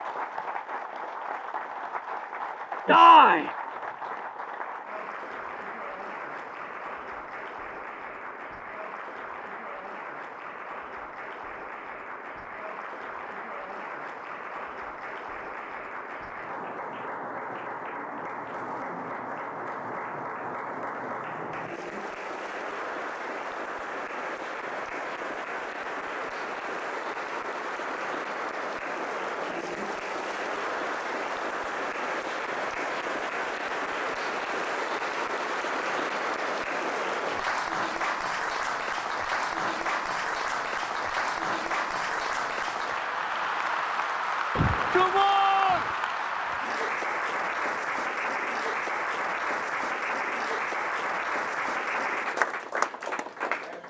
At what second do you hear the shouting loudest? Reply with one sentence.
The loudest moment of the shouting is at 3 seconds.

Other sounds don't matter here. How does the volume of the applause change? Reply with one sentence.
The volume of the applause goes up.